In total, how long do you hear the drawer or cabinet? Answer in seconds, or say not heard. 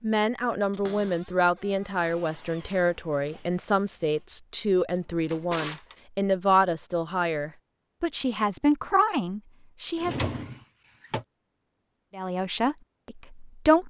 4 s.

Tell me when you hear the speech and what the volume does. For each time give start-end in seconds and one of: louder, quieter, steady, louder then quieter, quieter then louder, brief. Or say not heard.
0.0-10.3 steady
12.2-13.8 brief.